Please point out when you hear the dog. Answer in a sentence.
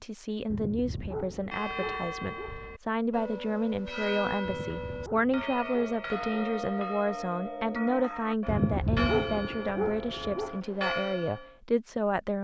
The dog can be heard from 0.5 to 2.5 s, from 4.5 to 6.3 s and from 8.4 to 10.6 s.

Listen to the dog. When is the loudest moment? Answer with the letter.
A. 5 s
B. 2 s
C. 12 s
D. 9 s
D.